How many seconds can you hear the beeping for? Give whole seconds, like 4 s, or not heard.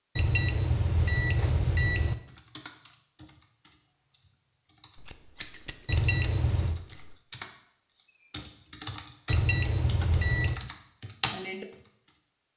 4 s.